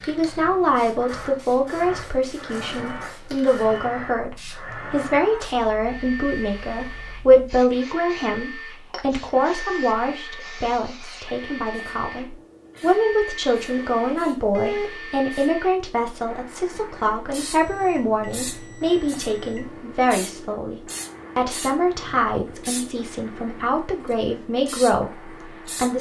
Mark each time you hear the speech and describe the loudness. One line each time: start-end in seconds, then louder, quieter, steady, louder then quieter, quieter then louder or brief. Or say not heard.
0.0-25.9 steady.